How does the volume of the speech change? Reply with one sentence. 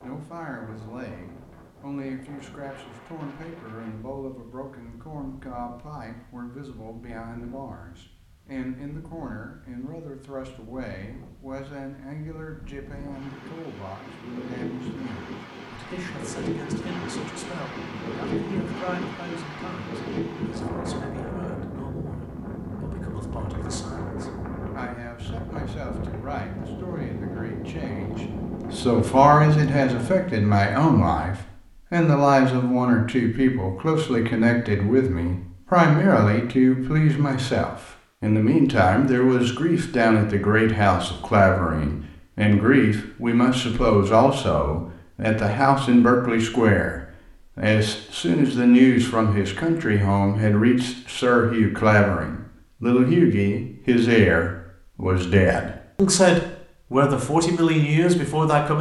The volume of the speech goes up.